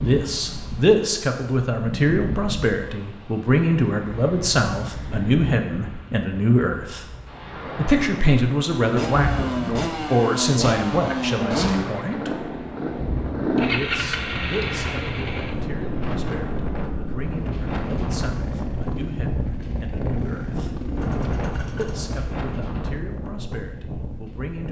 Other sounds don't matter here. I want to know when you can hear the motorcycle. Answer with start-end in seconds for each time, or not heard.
8.8-22.1.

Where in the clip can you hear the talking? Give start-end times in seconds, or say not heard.
0.0-7.0, 7.8-12.5, 13.7-20.8, 21.8-24.6.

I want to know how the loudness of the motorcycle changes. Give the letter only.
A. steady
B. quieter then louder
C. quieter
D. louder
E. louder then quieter
C.